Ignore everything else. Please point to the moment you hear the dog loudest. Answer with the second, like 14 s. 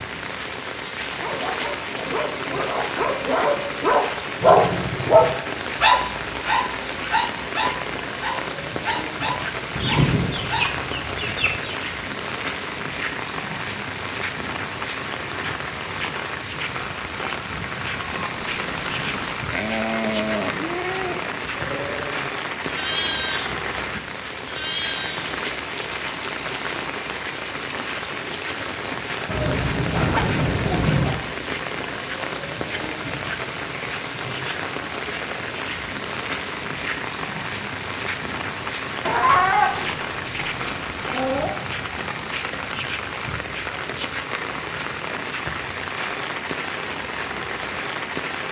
5 s.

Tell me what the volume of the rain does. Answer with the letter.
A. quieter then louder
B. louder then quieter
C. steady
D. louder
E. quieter
C.